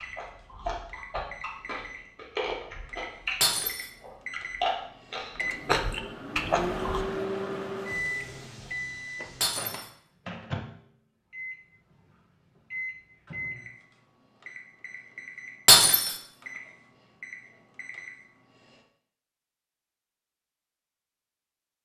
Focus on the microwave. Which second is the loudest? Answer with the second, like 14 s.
7 s.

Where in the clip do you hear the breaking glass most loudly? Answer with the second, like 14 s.
16 s.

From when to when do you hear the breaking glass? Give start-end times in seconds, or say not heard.
3.4-3.9, 9.4-9.9, 15.7-16.1.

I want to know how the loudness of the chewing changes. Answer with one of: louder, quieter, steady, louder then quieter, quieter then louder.
louder.